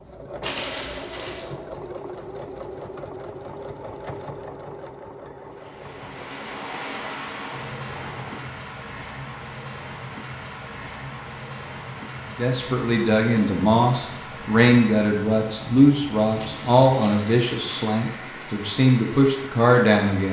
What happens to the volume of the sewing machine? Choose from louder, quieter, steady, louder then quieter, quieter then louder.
quieter.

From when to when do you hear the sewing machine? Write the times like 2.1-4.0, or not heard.
0.0-8.5.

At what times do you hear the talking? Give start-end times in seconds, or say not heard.
12.3-20.2.